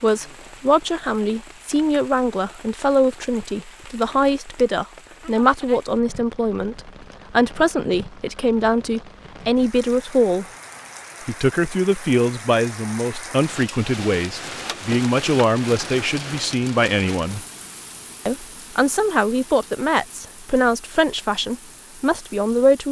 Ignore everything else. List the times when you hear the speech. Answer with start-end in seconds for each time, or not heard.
0.0-10.4, 11.2-17.4, 18.2-22.8.